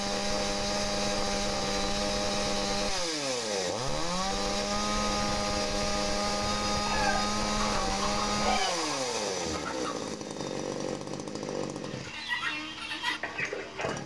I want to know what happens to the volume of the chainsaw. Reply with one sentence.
The loudness of the chainsaw goes down.